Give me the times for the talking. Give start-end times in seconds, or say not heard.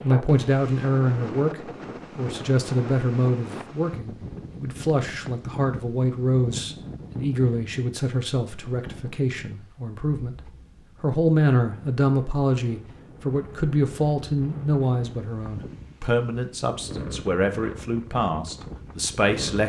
0.0-19.6.